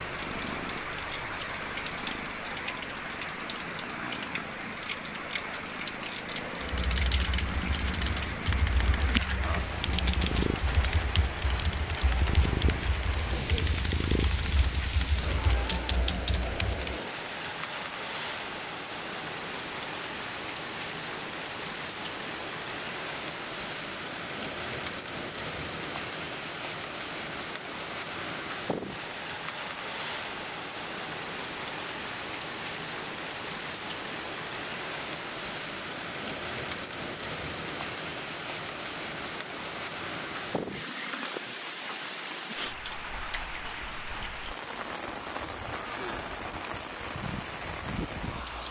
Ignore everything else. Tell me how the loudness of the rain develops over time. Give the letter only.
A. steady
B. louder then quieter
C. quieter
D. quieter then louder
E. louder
A.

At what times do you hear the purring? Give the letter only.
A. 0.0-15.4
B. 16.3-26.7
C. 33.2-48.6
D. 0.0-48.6
A.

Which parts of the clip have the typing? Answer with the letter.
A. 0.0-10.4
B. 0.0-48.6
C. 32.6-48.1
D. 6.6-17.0
D.